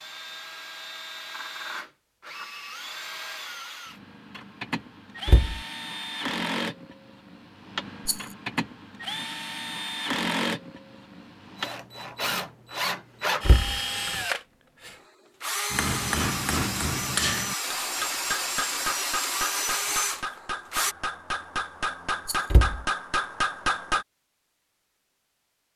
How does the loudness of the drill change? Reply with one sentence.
The loudness of the drill goes up.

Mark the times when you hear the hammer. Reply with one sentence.
The hammer can be heard from 15.7 to 24.1 s.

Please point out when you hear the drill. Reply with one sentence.
The drill can be heard from 0.0 to 20.9 s.